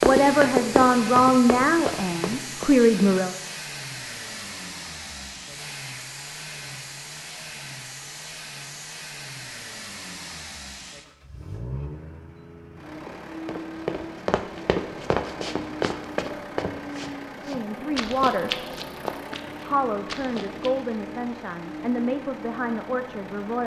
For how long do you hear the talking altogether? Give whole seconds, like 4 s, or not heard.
8 s.